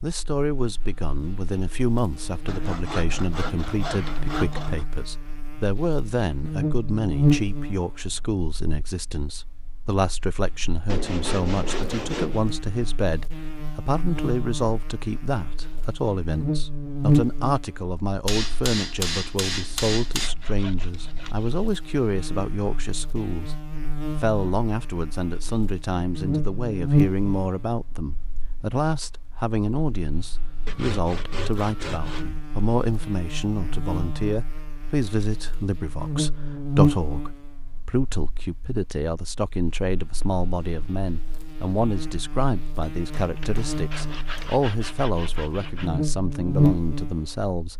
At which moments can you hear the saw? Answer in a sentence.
The saw can be heard from 2.5 to 4.8 s, from 10.8 to 12.4 s, from 20.2 to 21.8 s, from 30.6 to 32.3 s and from 43.4 to 46.0 s.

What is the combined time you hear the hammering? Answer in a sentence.
You can hear the hammering for 4 seconds altogether.